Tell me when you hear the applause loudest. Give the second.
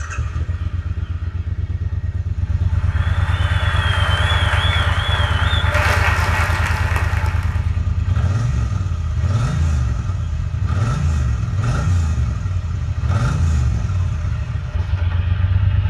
6 s.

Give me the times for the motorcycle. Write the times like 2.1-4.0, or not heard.
0.0-15.8.